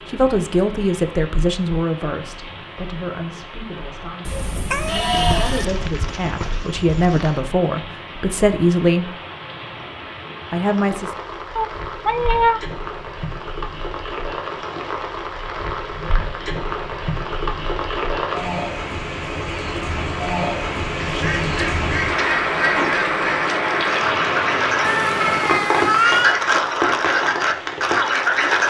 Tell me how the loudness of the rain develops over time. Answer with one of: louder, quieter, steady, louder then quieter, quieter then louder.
louder.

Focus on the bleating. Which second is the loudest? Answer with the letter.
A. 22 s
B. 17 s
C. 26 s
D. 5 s
D.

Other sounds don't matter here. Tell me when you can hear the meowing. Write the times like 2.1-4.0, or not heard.
4.2-5.7, 11.6-12.6, 24.8-26.4.